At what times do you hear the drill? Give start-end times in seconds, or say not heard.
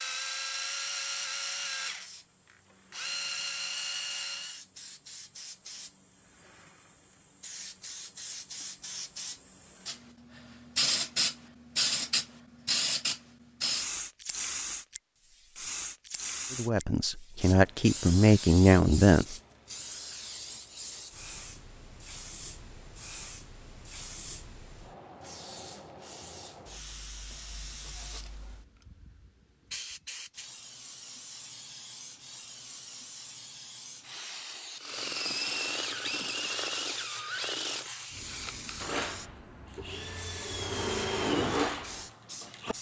0.0-4.6, 34.8-42.7.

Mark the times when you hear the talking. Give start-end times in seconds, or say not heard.
16.5-19.4.